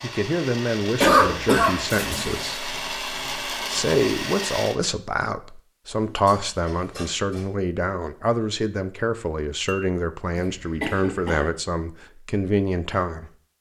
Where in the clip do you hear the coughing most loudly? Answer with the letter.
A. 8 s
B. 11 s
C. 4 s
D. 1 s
D.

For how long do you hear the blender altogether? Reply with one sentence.
The blender can be heard for 5 seconds in total.